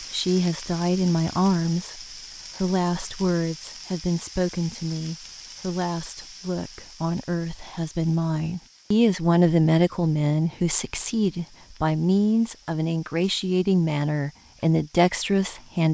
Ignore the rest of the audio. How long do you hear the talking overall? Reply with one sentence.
The talking can be heard for 16 seconds in total.